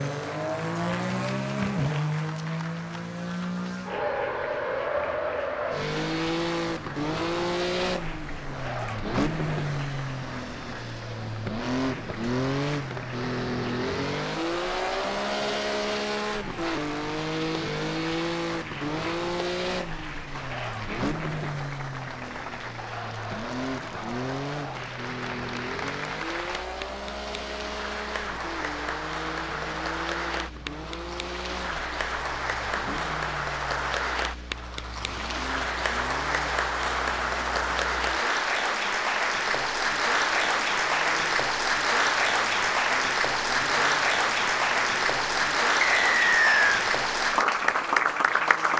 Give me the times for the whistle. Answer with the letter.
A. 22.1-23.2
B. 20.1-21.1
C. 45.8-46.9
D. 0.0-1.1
C.